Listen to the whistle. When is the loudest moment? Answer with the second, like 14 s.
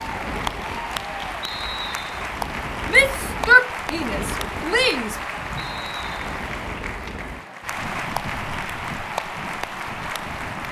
2 s.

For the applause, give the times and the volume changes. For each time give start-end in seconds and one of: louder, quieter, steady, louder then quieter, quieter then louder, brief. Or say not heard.
0.0-10.6 steady.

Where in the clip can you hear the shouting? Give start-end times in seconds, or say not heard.
2.9-5.2.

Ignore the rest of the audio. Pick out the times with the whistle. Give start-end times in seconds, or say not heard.
1.4-2.3, 5.5-6.2.